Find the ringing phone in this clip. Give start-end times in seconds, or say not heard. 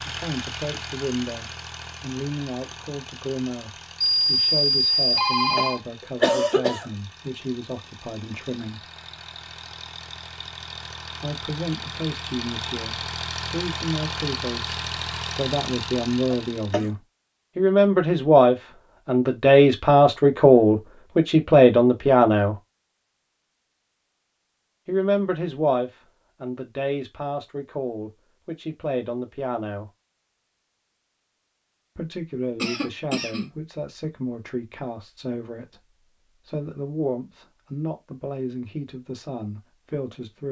4.0-5.8.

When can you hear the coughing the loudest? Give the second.
6 s.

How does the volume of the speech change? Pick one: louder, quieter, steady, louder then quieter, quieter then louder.
louder then quieter.